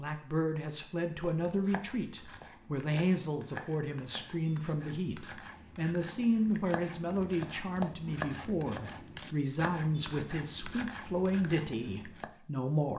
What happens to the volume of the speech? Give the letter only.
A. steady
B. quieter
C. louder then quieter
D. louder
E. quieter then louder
A.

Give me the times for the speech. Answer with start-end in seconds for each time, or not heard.
0.0-12.9.